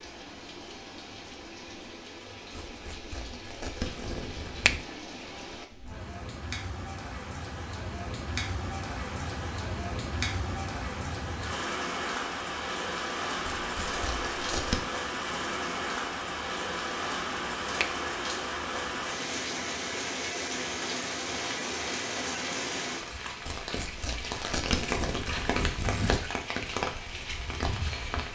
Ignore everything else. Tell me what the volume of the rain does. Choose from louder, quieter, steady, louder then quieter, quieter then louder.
louder.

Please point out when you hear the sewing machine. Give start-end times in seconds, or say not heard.
not heard.